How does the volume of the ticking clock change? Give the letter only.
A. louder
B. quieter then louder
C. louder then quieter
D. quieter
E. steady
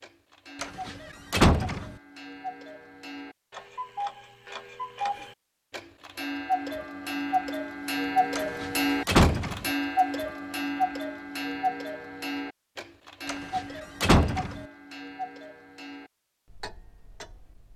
C.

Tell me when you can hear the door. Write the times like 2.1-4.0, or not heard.
0.6-1.9, 8.3-9.7, 13.2-14.6.